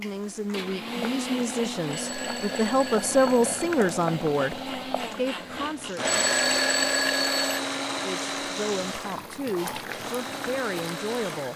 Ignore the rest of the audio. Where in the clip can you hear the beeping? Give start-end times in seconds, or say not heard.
1.9-3.6, 6.0-7.6.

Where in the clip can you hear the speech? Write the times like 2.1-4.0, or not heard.
0.0-6.0, 8.0-11.5.